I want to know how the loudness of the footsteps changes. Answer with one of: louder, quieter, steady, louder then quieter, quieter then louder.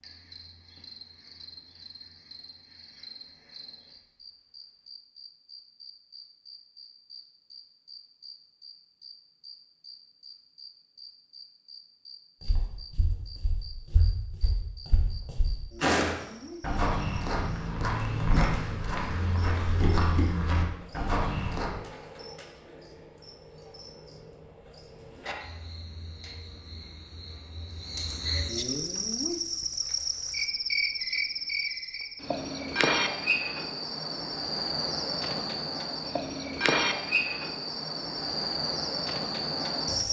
louder.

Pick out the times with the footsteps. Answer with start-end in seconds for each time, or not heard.
12.4-21.7.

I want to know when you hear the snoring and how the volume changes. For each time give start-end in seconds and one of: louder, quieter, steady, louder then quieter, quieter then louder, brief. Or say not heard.
not heard.